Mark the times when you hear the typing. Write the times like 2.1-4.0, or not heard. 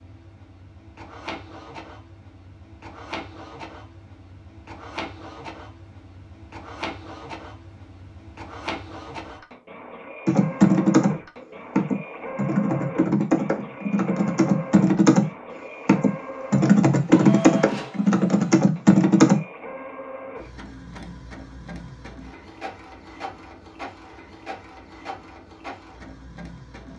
10.2-11.2, 11.8-19.4.